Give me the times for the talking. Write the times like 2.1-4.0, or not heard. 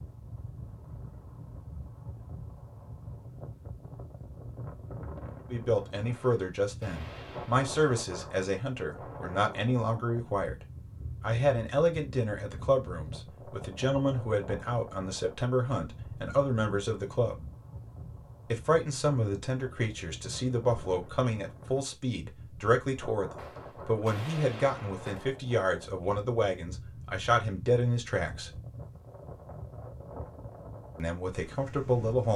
5.5-17.4, 18.5-28.6, 30.9-32.3.